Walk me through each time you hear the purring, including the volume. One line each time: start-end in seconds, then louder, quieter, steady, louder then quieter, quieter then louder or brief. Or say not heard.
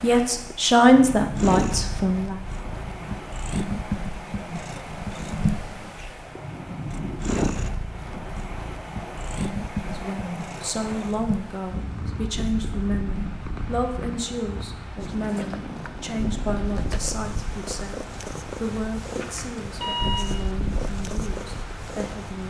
0.0-22.4 quieter.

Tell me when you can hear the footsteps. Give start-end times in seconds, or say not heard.
not heard.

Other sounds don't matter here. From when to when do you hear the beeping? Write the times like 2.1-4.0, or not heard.
19.2-20.4.